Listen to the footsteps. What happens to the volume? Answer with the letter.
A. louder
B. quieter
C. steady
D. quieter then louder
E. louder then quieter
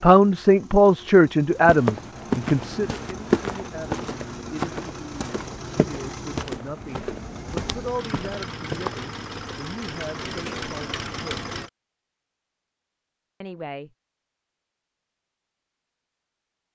B.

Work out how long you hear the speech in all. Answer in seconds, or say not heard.
12 s.